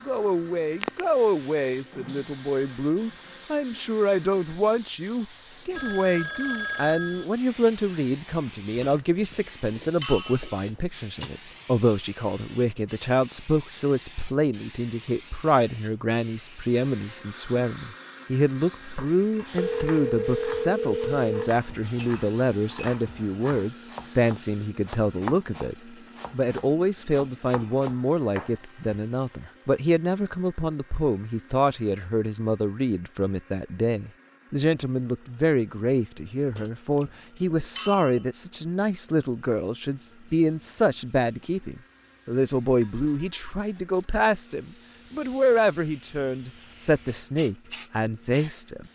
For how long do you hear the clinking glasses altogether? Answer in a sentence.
You can hear the clinking glasses for 5 seconds altogether.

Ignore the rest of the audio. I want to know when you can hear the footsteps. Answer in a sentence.
You can't hear the footsteps here.